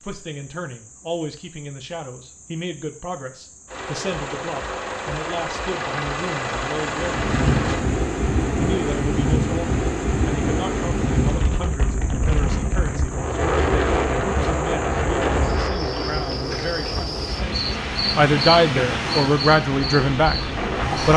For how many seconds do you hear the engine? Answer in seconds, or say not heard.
8 s.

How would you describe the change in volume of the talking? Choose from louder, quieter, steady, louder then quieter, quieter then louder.
louder.